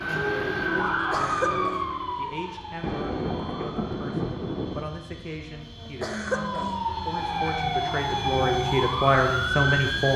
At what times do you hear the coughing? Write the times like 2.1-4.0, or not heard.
1.1-1.8, 6.0-6.8.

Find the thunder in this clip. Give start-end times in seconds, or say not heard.
2.8-4.8.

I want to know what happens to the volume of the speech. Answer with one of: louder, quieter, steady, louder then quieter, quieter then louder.
louder.